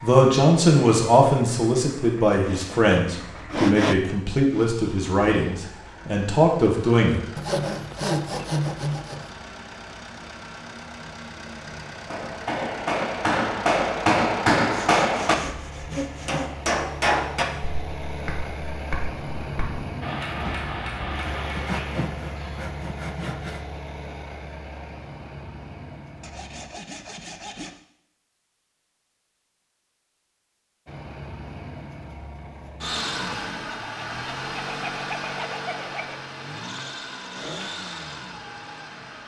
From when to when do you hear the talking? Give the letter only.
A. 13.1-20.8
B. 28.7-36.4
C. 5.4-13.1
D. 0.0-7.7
D.